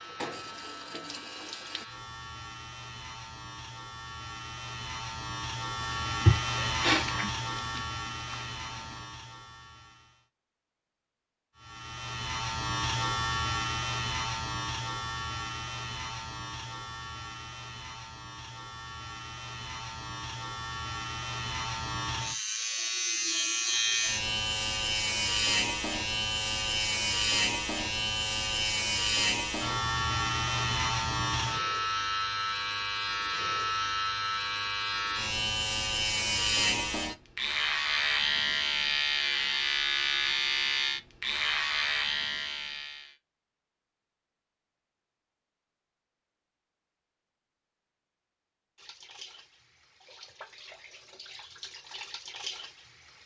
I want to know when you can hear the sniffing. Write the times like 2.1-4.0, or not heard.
6.2-7.3.